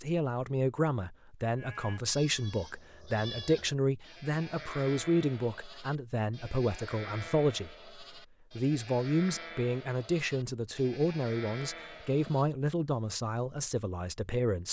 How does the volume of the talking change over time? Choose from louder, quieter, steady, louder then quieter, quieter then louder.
steady.